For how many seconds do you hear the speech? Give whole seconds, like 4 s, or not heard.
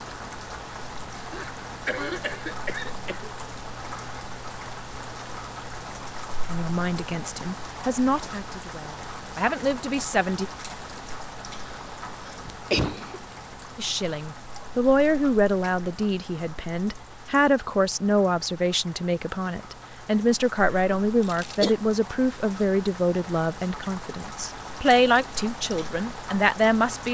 17 s.